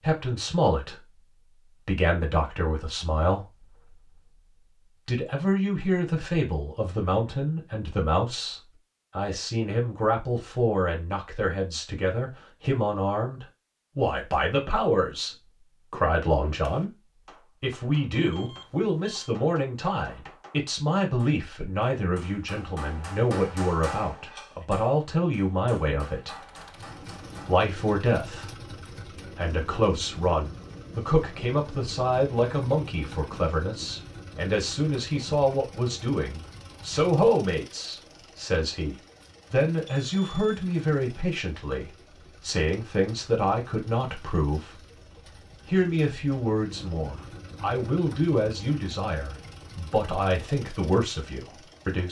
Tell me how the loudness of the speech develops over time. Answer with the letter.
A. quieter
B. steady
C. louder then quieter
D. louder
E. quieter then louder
B.